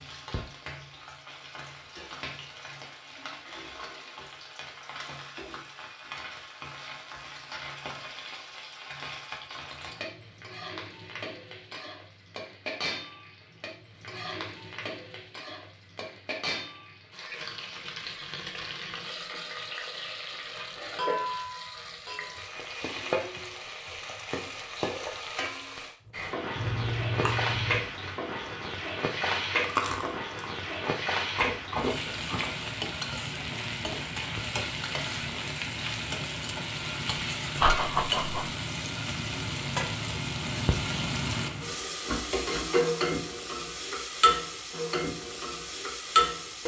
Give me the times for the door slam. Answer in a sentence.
The door slam can't be heard in this clip.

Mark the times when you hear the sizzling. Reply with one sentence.
You can hear the sizzling from 0.0 to 46.6 s.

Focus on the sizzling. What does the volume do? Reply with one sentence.
The volume of the sizzling goes up.